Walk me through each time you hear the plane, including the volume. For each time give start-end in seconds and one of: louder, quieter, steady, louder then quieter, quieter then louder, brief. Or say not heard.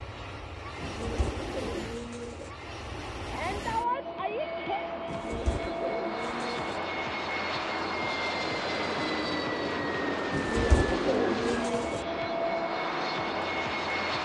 0.0-14.1 louder.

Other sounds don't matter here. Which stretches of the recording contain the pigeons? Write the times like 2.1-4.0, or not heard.
0.8-2.5, 5.0-6.8, 10.3-12.1.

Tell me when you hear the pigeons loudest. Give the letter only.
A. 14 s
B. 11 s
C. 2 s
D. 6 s
B.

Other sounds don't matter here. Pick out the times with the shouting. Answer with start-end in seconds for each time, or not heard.
3.2-4.8.